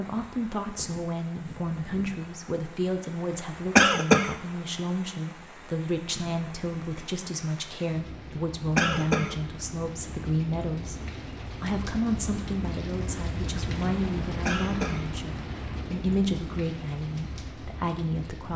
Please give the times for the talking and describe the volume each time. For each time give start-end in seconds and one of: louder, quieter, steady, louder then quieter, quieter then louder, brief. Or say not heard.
0.0-18.5 steady.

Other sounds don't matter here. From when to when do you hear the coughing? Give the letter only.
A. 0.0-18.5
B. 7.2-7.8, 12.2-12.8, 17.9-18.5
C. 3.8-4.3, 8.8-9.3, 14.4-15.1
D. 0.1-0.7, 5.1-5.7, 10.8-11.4
C.